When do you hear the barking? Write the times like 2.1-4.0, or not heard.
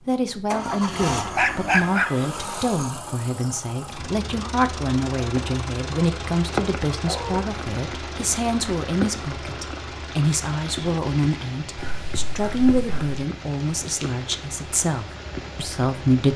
0.8-2.1, 7.0-7.4, 11.8-13.2.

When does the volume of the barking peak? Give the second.
2 s.